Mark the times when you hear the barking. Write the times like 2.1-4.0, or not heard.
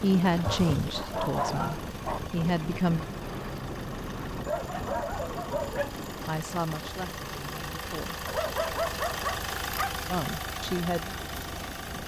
0.5-2.2, 4.5-6.0, 8.2-9.9.